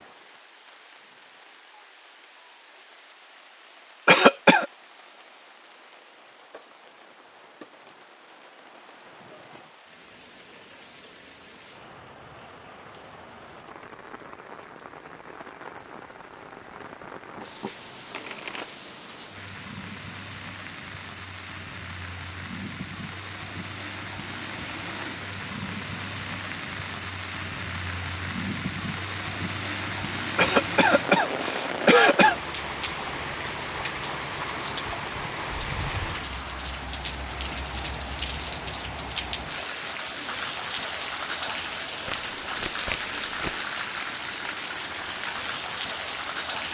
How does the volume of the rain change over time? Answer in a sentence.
The loudness of the rain goes up.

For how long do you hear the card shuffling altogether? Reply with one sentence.
You can hear the card shuffling for 3 seconds altogether.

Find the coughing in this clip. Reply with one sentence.
The coughing can be heard from 4.0 to 4.7 s and from 30.4 to 32.4 s.